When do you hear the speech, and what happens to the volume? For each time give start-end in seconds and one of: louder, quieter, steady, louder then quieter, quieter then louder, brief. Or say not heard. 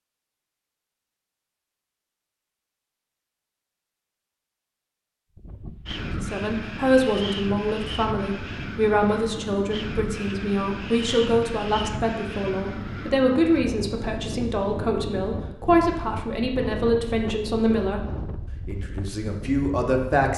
6.0-20.3 steady.